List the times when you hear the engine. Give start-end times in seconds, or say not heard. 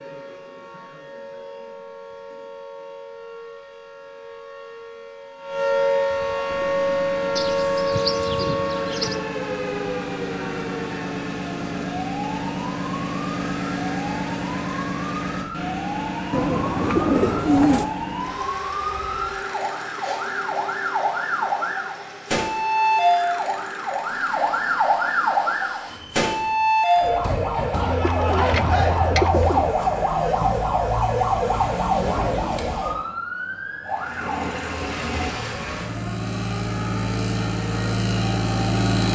6.5-26.9, 33.9-39.0.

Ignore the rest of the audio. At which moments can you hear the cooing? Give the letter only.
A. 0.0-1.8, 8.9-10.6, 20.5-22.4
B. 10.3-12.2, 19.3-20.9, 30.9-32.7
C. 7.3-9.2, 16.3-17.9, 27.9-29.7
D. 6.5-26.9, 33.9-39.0
C.